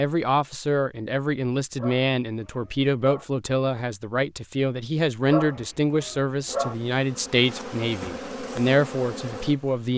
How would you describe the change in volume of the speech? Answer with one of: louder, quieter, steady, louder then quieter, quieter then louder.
steady.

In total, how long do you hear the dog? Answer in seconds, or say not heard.
3 s.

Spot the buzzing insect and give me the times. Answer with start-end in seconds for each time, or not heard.
6.5-9.9.